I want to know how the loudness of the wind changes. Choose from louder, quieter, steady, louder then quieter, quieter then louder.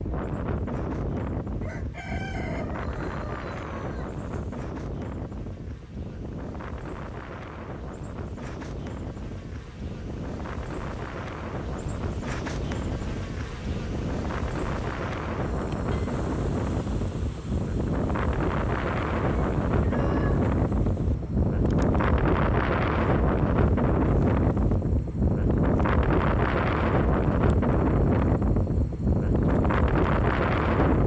louder.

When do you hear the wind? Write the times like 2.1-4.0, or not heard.
0.0-31.0.